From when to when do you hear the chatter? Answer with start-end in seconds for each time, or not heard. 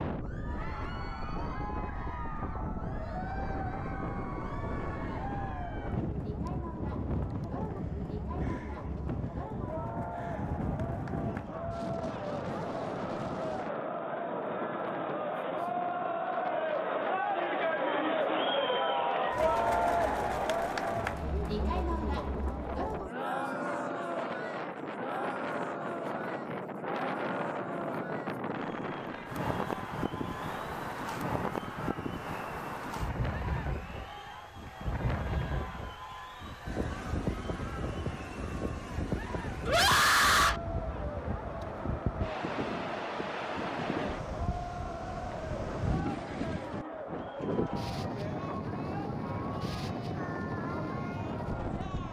0.1-52.0.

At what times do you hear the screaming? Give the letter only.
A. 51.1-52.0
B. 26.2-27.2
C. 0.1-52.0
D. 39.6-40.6
D.